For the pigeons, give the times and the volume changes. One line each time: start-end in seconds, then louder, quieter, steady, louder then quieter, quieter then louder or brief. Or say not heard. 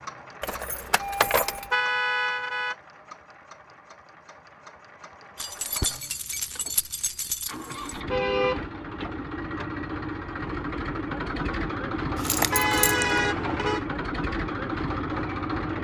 not heard.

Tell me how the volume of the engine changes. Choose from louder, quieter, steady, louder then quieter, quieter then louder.
louder.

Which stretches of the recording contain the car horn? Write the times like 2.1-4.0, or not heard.
1.7-2.8, 8.1-8.7, 12.5-13.8.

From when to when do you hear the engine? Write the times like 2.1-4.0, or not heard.
0.0-15.7.